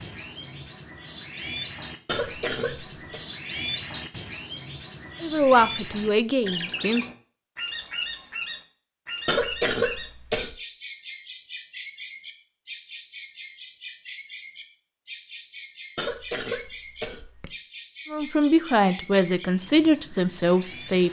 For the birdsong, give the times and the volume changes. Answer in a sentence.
The birdsong can be heard from 0.0 to 21.0 s, getting quieter.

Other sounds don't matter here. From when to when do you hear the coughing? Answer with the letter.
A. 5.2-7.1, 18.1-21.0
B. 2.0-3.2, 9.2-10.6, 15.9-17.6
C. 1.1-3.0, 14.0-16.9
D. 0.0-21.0
B.